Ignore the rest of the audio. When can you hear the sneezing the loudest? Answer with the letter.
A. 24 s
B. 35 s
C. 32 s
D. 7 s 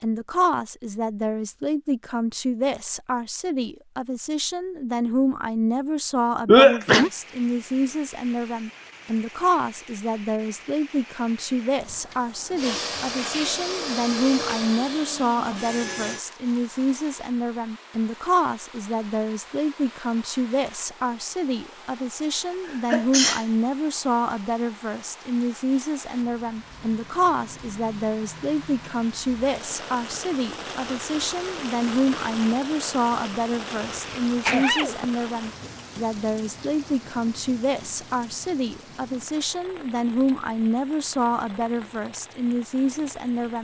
D.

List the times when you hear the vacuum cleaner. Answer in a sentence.
You can hear the vacuum cleaner from 12.6 to 16.2 s.